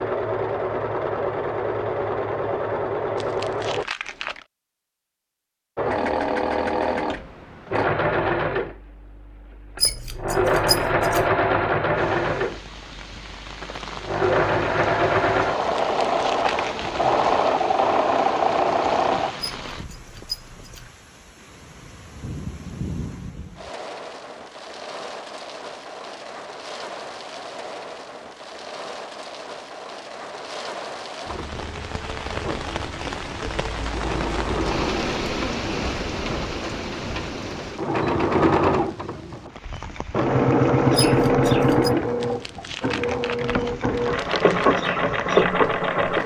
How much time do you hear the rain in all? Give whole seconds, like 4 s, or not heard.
34 s.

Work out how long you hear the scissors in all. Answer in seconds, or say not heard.
4 s.